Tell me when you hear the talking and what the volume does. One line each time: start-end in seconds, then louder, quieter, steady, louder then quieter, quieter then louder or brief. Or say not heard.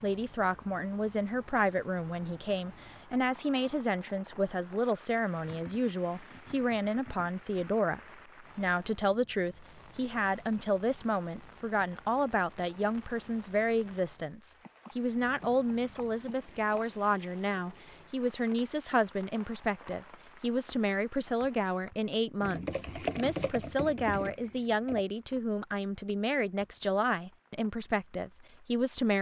0.0-29.1 steady.